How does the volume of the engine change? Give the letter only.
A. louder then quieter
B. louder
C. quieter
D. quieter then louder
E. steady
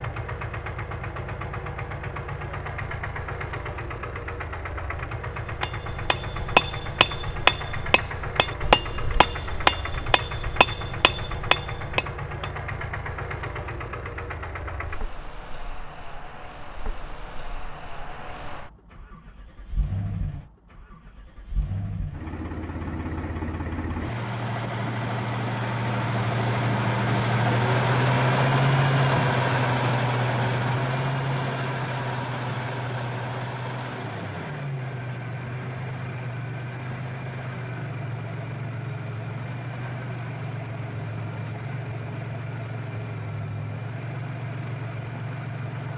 A.